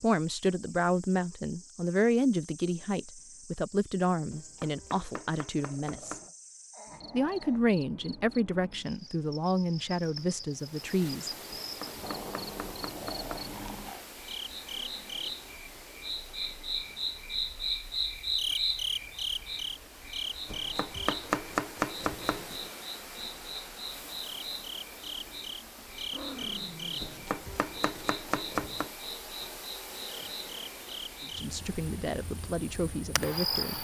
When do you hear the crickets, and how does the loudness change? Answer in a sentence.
You can hear the crickets from 0.0 to 33.7 s, getting louder then quieter.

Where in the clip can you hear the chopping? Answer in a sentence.
You can hear the chopping from 4.3 to 6.3 s, from 11.5 to 13.5 s, from 20.4 to 22.4 s and from 27.0 to 28.9 s.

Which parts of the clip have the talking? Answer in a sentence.
The talking can be heard from 0.0 to 6.2 s, from 7.1 to 11.3 s and from 31.2 to 33.7 s.